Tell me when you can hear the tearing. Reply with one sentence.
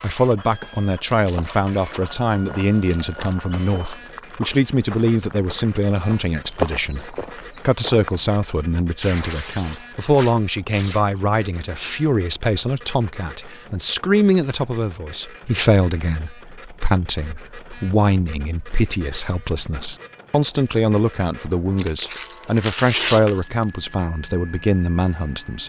The tearing can be heard from 1.1 to 1.6 s, from 2.5 to 3.4 s, from 9.0 to 11.0 s and from 21.8 to 23.7 s.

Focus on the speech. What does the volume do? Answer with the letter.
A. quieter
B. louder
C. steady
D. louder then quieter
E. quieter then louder
C.